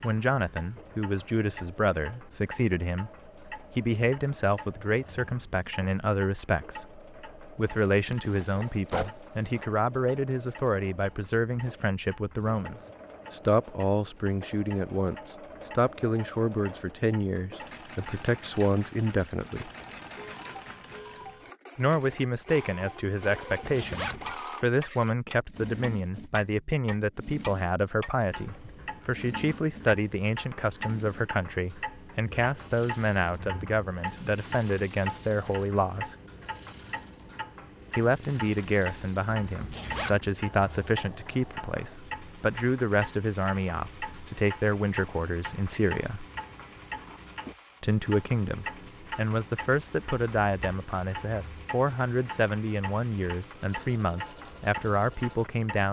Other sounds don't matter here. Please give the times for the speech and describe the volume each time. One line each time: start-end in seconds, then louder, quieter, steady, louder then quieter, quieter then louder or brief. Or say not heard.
0.0-19.7 steady
21.8-36.1 steady
38.0-46.2 steady
47.8-55.8 steady.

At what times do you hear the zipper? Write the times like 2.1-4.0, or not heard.
7.7-9.7, 23.6-24.4, 39.6-40.3.